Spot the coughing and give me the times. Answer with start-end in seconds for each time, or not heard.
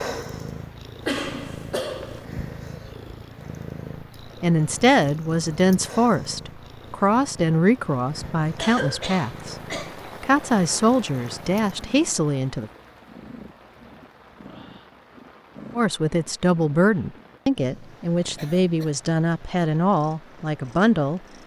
1.1-2.2, 8.6-10.0, 18.4-18.9.